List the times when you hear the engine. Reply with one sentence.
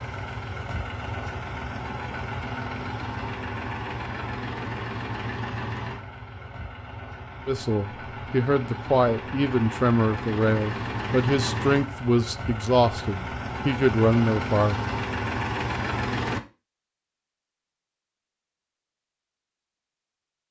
You can hear the engine from 0.0 to 16.4 s.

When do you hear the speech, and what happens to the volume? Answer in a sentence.
The speech can be heard from 7.5 to 14.8 s, at a steady volume.